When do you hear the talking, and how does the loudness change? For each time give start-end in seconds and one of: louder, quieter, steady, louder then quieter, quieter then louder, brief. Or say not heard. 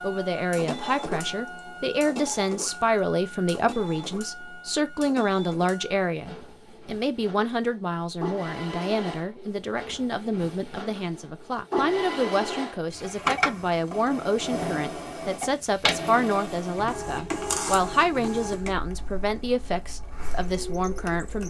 0.0-21.4 steady.